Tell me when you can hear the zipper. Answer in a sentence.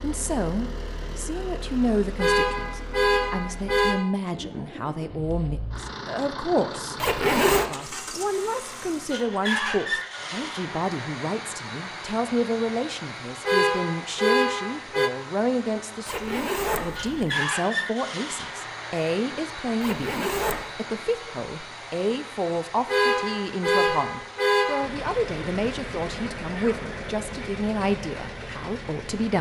You can hear the zipper from 7.0 to 7.7 s, from 16.1 to 17.3 s and from 19.8 to 20.6 s.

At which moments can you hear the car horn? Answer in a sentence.
The car horn can be heard from 2.1 to 4.1 s, from 13.4 to 15.1 s and from 22.9 to 24.9 s.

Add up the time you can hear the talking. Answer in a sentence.
The talking can be heard for 29 seconds in total.